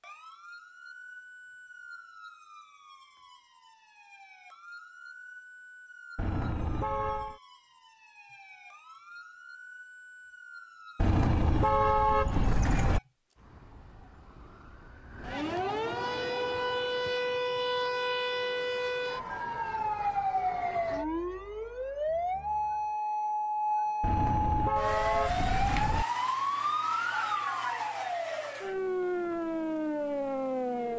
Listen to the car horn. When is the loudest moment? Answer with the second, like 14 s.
12 s.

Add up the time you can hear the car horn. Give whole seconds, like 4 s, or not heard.
5 s.